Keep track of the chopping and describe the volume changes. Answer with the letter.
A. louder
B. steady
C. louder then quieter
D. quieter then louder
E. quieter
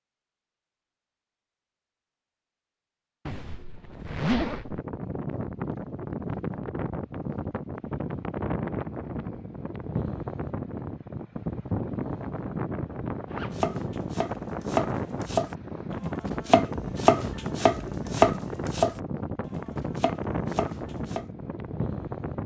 C.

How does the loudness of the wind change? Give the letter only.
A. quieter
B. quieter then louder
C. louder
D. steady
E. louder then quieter
D.